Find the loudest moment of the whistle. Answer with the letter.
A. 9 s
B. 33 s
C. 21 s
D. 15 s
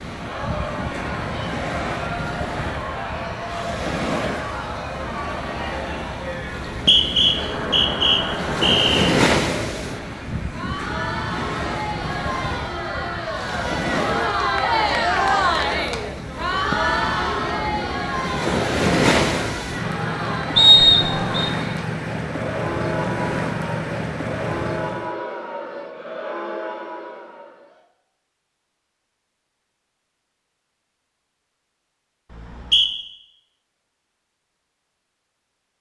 C.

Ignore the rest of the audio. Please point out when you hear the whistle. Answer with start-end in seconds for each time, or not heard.
6.7-9.1, 20.6-21.5, 32.3-32.9.